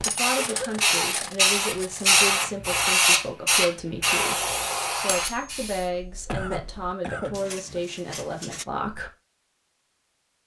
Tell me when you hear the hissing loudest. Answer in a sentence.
The volume of the hissing peaks at 3 seconds.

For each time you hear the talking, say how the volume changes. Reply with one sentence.
You can hear the talking from 0.0 to 9.1 s, at a steady volume.